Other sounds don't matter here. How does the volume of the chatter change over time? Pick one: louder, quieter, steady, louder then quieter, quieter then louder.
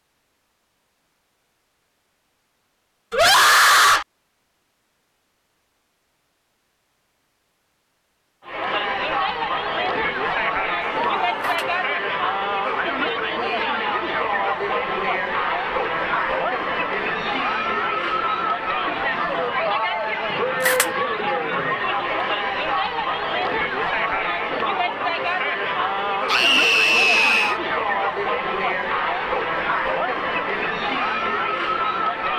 steady.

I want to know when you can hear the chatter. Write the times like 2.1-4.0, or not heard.
8.4-32.3.